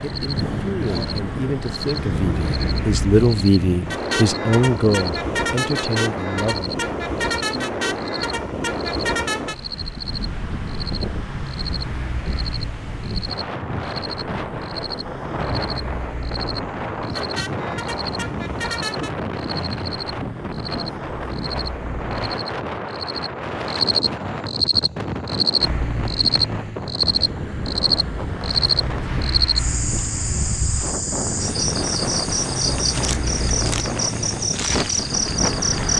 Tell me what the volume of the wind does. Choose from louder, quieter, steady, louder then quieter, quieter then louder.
steady.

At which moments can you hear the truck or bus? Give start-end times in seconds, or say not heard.
0.0-22.2, 25.6-35.9.